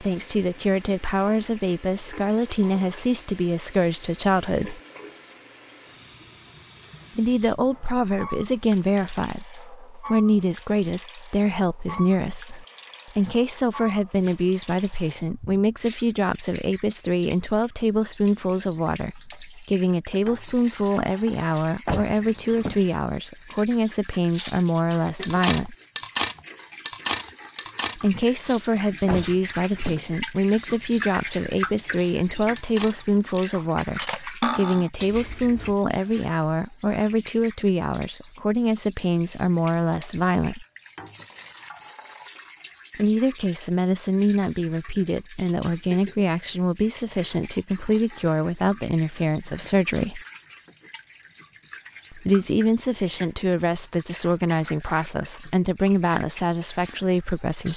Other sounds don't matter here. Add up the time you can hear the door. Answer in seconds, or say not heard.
2 s.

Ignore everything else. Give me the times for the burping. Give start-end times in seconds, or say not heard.
not heard.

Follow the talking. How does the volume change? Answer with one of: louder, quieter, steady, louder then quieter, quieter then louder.
steady.